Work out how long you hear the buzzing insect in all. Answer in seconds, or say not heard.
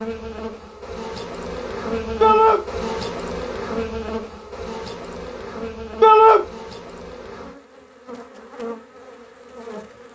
10 s.